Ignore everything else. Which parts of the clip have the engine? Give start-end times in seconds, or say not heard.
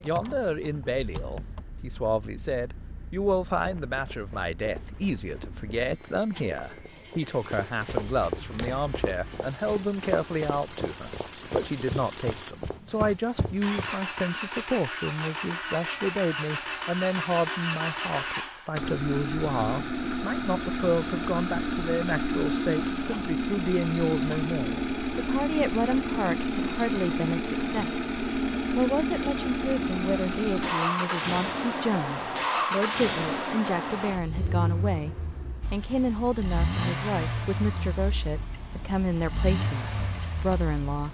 0.0-41.0.